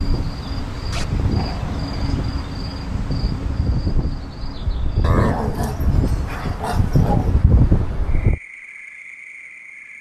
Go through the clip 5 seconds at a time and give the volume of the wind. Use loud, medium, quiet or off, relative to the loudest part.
medium, loud.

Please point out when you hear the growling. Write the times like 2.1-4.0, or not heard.
0.9-2.1, 5.0-7.3.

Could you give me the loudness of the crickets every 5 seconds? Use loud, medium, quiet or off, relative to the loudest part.
loud, medium.